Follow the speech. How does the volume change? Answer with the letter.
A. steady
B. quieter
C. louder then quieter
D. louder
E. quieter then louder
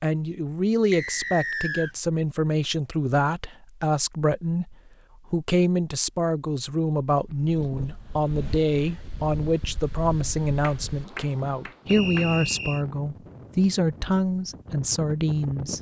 A.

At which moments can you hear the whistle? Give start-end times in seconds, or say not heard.
0.9-1.9, 11.8-12.8.